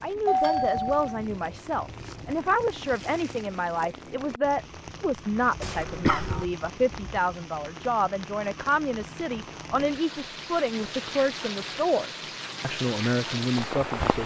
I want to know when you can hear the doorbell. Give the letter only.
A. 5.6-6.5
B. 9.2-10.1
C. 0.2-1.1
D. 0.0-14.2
C.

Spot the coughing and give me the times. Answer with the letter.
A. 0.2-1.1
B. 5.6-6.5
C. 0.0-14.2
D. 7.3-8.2
B.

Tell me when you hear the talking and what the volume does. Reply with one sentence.
You can hear the talking from 0.0 to 14.2 s, at a steady volume.